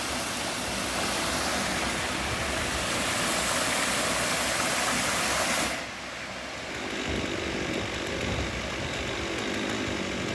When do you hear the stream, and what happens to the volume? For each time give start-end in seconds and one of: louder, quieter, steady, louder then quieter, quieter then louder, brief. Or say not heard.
0.0-10.3 quieter.